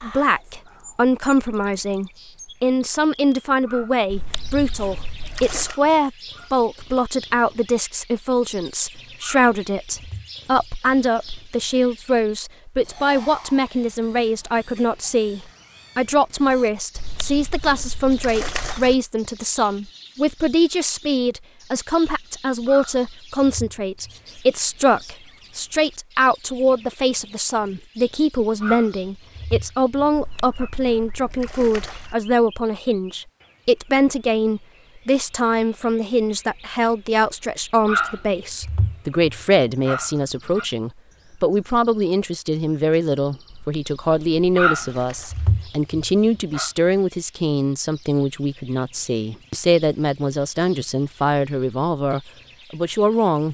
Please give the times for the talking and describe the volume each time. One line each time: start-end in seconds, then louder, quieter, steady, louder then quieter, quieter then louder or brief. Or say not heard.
0.0-53.4 steady.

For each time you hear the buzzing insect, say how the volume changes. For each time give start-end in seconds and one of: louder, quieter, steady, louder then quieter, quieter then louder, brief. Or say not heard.
not heard.